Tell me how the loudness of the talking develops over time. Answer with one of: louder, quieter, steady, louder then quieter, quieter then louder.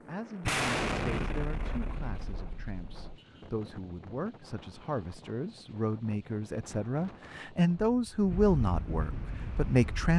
louder.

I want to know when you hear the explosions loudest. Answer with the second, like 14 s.
1 s.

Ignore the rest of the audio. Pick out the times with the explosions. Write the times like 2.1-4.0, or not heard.
0.4-3.2.